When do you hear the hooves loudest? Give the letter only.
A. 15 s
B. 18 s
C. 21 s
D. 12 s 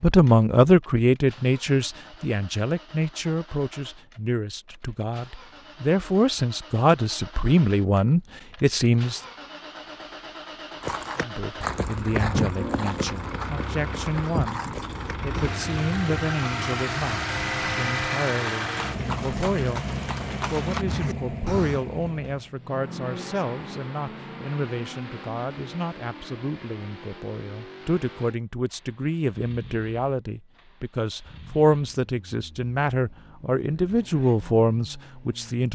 D.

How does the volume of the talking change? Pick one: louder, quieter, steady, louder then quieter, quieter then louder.
quieter then louder.